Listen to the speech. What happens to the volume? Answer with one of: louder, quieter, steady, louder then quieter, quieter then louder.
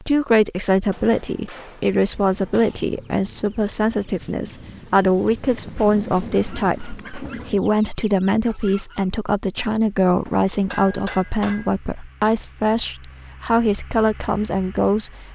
steady.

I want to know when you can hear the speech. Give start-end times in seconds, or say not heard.
0.0-15.3.